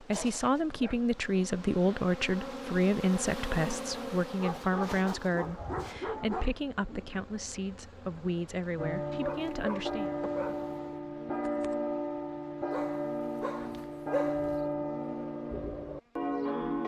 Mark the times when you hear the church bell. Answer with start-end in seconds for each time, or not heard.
8.8-16.8.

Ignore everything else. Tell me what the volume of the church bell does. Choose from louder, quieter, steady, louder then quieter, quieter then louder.
steady.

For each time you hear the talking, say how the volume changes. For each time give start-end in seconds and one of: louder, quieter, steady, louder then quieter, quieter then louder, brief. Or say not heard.
0.0-10.1 quieter.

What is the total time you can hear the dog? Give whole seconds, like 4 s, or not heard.
6 s.